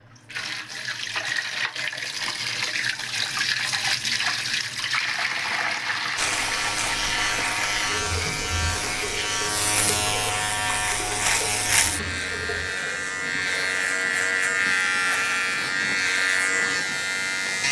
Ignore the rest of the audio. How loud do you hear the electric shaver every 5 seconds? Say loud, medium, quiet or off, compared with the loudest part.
off, loud, loud, loud.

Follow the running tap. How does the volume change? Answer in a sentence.
The loudness of the running tap goes down.